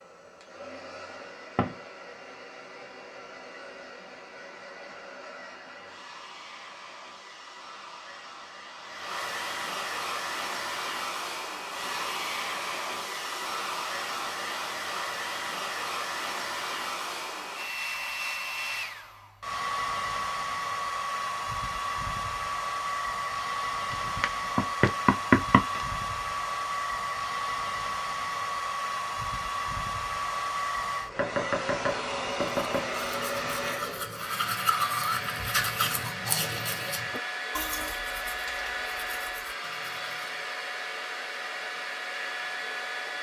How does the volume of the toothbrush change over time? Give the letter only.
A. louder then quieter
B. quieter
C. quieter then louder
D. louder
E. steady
A.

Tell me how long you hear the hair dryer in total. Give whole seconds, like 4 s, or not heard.
43 s.